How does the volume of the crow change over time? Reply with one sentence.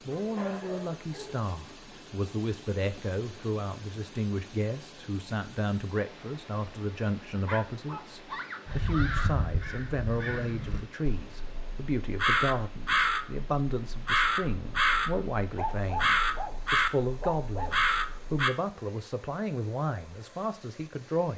The loudness of the crow goes up.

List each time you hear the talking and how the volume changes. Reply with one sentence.
The talking can be heard from 0.1 to 21.3 s, at a steady volume.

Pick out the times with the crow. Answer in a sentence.
The crow can be heard from 8.7 to 18.5 s.